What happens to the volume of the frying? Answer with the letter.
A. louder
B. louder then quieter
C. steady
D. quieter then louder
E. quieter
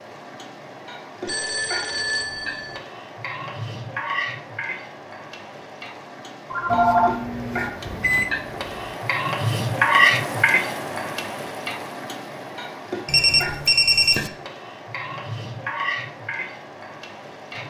B.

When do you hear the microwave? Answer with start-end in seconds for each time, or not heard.
6.7-8.9.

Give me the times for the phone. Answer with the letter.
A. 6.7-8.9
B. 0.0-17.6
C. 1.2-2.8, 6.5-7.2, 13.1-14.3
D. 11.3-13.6
C.